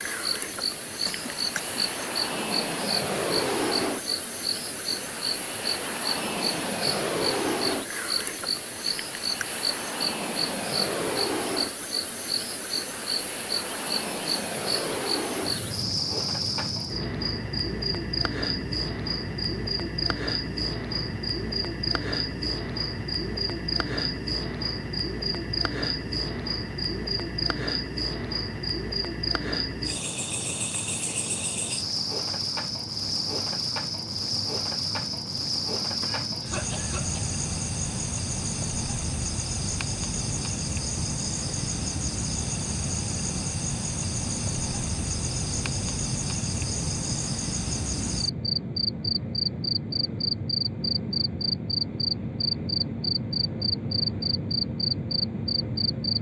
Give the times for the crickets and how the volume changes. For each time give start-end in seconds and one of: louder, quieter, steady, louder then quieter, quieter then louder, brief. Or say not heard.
0.0-56.1 steady.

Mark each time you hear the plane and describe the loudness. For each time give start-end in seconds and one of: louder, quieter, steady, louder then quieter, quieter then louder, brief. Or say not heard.
0.1-56.1 quieter then louder.